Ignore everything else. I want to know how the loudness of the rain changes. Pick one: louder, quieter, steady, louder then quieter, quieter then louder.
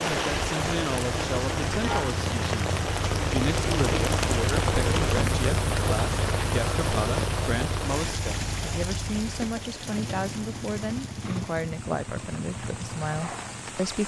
quieter.